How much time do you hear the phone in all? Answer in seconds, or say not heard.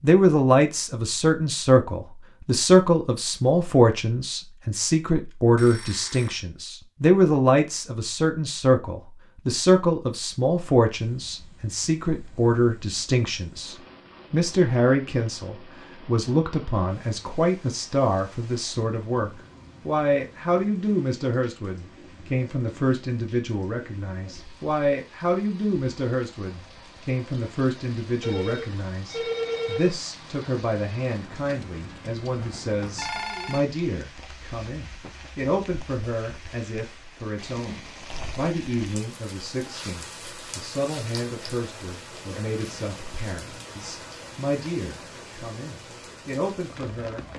3 s.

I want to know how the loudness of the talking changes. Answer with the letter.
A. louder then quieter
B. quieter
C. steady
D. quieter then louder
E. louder
B.